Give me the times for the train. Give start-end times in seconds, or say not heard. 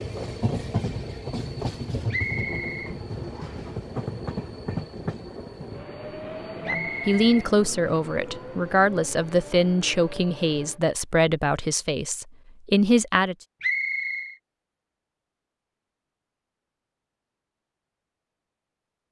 0.0-10.8.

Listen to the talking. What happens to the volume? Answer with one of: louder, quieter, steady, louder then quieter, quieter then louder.
steady.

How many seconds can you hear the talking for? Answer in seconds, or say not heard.
7 s.